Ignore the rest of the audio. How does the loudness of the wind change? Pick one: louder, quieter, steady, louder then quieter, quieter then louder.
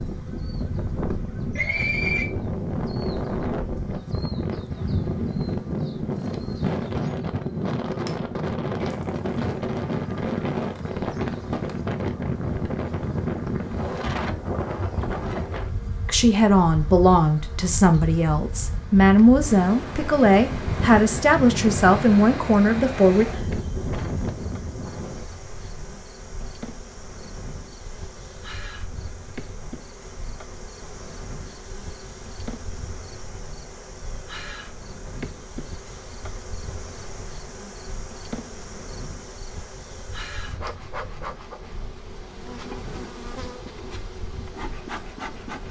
quieter.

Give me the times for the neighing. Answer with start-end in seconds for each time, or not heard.
1.6-2.3.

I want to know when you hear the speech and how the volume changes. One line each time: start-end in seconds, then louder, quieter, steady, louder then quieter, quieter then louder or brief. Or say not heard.
16.1-23.2 steady.